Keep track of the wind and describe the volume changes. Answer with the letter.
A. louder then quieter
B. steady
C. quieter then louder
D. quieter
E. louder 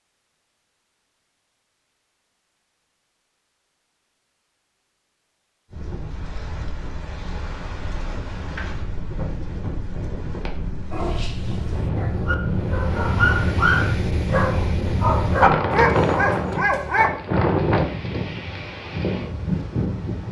E.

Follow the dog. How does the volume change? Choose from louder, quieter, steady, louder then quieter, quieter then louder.
louder.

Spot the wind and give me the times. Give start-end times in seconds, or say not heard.
5.7-20.2.